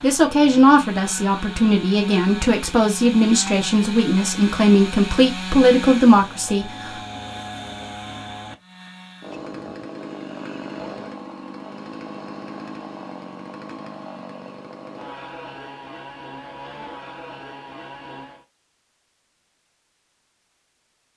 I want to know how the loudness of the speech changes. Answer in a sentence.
The loudness of the speech stays about the same.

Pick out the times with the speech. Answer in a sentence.
You can hear the speech from 0.0 to 6.9 s.